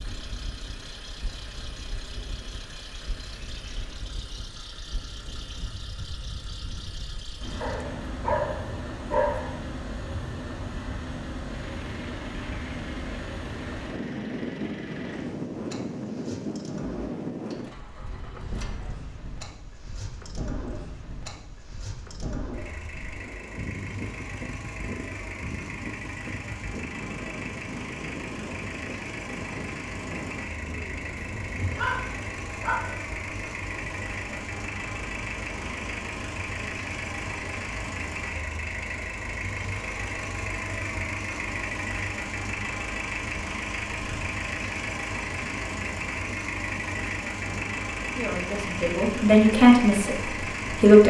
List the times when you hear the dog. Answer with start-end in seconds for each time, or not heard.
7.6-9.6, 31.4-32.8.